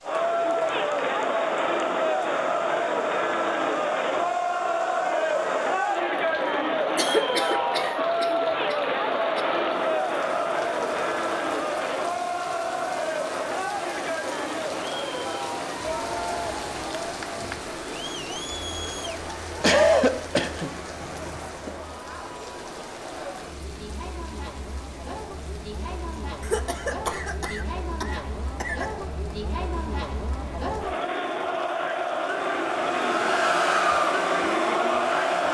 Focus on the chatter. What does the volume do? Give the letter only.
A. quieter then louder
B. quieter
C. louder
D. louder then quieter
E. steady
A.